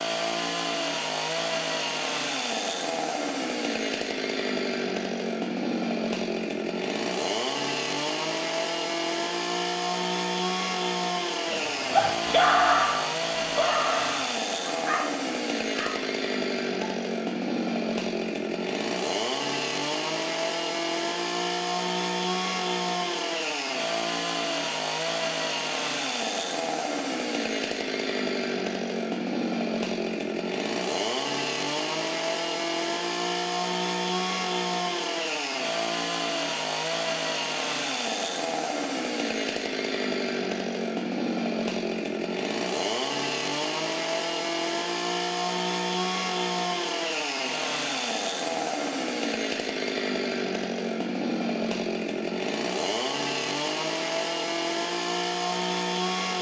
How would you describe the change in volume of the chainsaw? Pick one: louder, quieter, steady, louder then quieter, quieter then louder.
steady.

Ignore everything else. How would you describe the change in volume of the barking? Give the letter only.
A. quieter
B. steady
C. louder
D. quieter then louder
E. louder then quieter
A.